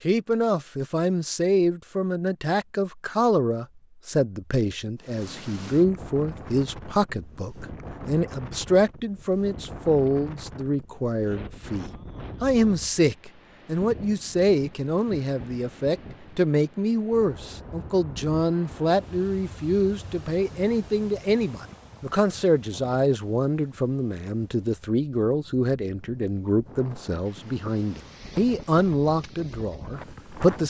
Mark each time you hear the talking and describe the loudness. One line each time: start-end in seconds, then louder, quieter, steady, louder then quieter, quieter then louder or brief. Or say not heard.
0.0-30.6 steady.